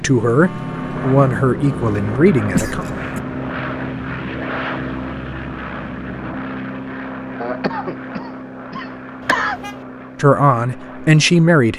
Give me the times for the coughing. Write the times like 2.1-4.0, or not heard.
2.5-3.2, 7.4-9.6.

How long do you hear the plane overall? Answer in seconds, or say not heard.
12 s.